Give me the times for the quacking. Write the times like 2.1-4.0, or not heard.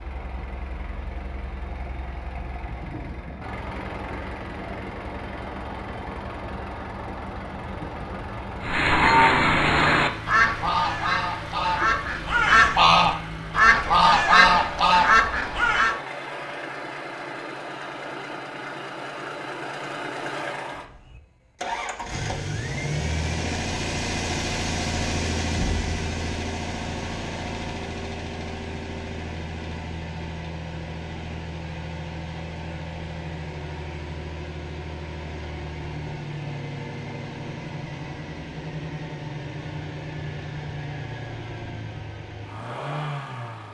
8.6-15.9.